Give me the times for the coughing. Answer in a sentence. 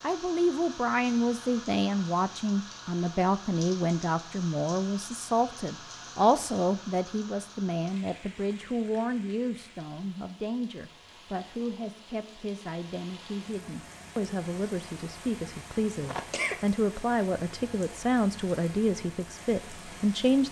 The coughing can be heard from 16.0 to 16.6 s.